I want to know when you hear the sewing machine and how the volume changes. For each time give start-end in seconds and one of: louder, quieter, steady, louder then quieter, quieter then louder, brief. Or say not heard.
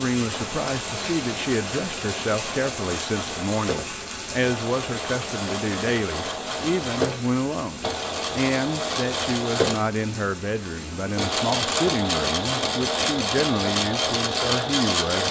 0.2-15.2 louder.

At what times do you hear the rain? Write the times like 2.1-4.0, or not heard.
0.0-11.3.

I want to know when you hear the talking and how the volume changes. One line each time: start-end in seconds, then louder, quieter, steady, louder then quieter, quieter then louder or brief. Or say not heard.
0.0-15.2 steady.